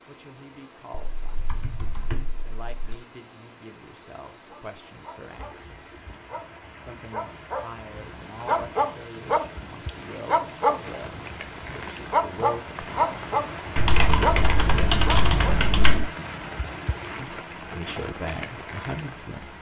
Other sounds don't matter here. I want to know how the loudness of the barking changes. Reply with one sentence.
The volume of the barking goes up.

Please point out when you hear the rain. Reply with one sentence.
You can hear the rain from 0.0 to 19.5 s.